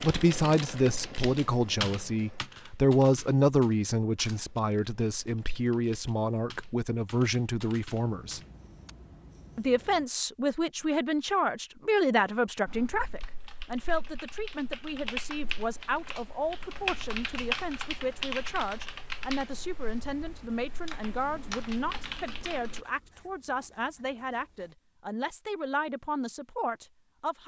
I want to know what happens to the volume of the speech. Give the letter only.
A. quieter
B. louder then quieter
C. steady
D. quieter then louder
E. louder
A.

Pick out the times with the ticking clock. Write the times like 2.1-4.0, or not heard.
not heard.